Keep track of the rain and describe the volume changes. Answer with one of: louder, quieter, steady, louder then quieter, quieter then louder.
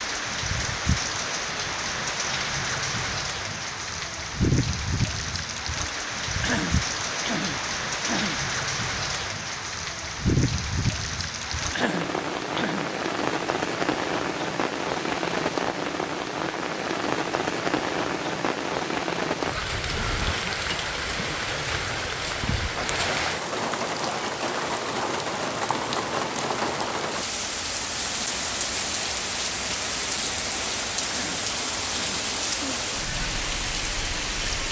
steady.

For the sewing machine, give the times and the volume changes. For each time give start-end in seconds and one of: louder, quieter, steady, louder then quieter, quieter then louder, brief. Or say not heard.
not heard.